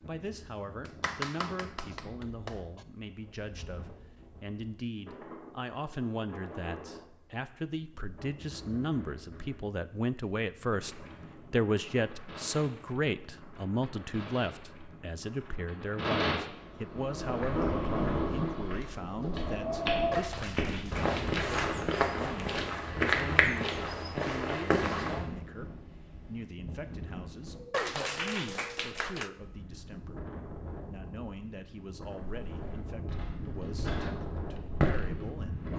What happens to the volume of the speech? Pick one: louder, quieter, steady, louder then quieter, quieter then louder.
louder then quieter.